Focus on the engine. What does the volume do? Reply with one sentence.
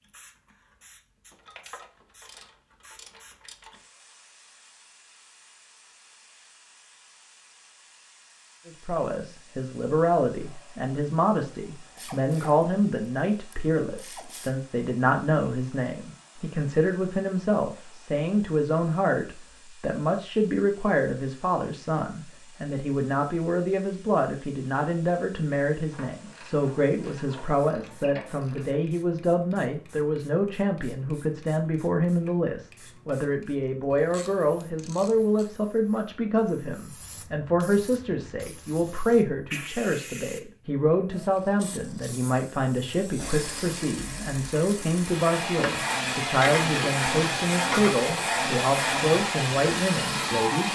The volume of the engine goes up.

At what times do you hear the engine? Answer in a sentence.
You can hear the engine from 43.1 to 50.7 s.